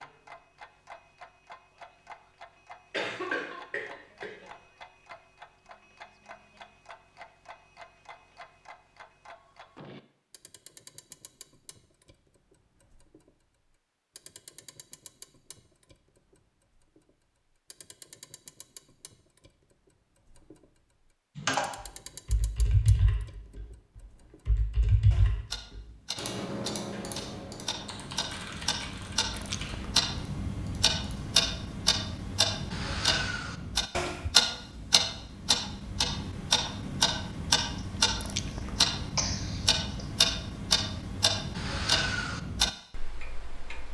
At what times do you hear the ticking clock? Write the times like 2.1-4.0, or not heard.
0.0-43.8.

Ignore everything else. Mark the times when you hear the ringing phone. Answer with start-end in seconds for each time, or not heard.
not heard.